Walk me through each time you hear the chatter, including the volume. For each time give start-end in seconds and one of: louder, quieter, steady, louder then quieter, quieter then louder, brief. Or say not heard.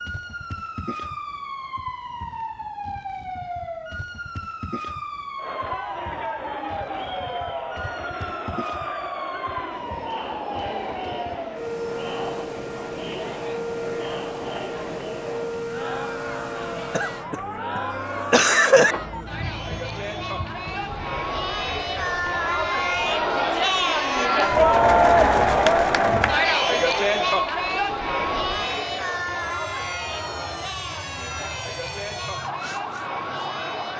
5.3-33.9 louder then quieter.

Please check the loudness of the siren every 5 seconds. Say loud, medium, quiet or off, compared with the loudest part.
loud, loud, loud, loud, medium, medium, loud.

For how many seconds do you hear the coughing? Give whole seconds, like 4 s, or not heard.
2 s.